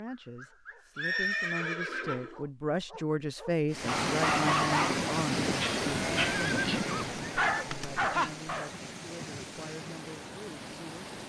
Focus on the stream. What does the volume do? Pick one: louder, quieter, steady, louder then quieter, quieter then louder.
quieter.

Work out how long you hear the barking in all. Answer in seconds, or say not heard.
9 s.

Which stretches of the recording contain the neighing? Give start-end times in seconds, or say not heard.
0.9-2.4, 6.0-7.7.